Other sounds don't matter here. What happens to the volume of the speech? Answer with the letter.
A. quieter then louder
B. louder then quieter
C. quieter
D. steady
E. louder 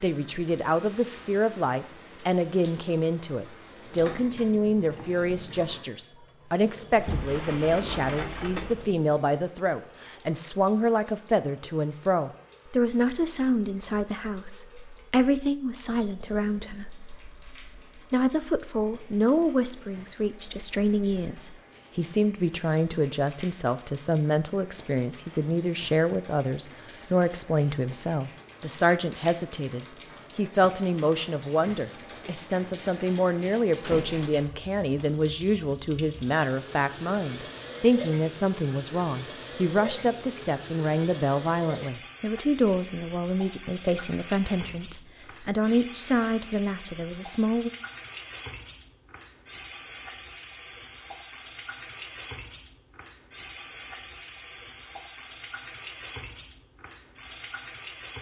D.